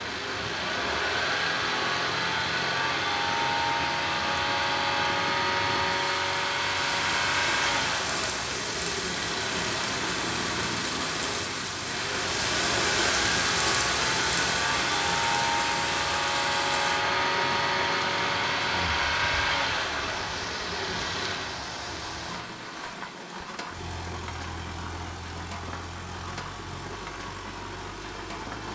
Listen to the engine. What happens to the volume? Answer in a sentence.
The loudness of the engine goes down.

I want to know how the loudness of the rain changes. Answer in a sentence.
The loudness of the rain goes up, then down.